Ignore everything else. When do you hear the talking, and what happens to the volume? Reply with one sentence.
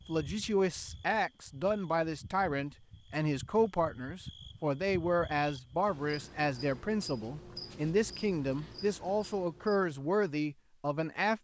The talking can be heard from 0.1 to 11.3 s, at a steady volume.